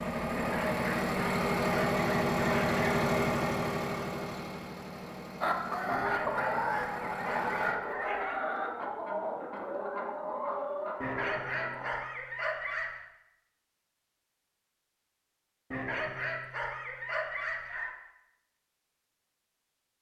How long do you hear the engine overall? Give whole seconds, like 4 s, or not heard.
8 s.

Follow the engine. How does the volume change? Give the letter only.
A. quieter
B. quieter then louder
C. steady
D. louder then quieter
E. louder
A.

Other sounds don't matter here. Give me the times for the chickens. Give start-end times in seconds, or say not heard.
5.4-11.9.